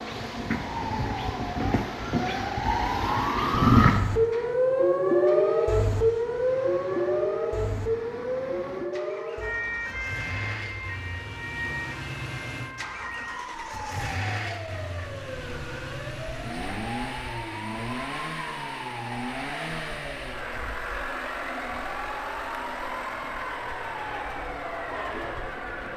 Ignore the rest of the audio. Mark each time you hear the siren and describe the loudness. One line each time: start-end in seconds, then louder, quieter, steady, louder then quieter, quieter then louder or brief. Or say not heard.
0.0-25.9 quieter.